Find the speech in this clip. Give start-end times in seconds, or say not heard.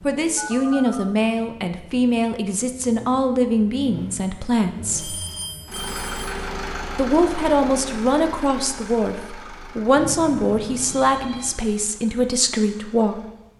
0.1-5.2, 7.0-13.2.